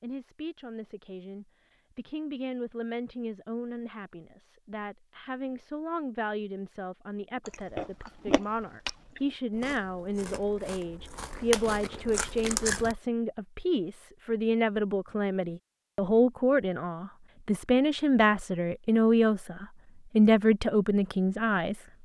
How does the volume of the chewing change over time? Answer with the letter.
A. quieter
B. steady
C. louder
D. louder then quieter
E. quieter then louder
E.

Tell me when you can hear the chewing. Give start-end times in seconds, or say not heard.
7.5-12.9.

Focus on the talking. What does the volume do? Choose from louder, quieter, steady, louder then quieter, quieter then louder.
louder.